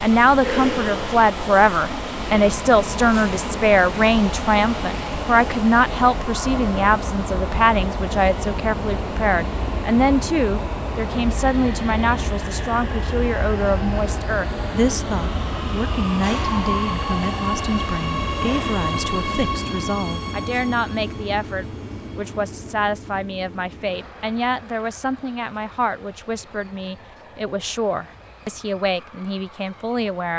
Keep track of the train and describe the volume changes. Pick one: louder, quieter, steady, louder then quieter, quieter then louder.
quieter.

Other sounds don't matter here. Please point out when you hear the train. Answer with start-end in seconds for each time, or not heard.
0.0-30.3.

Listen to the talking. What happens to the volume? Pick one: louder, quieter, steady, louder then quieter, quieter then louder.
quieter.